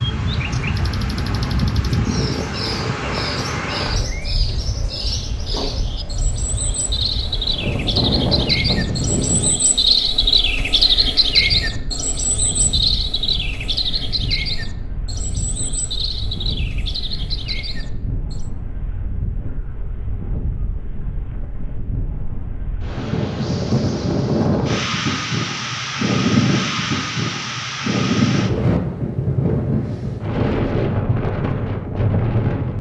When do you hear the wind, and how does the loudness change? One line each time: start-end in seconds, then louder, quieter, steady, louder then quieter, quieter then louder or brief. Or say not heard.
0.0-32.7 quieter then louder.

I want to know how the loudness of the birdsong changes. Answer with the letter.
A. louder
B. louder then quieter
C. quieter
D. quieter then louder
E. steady
B.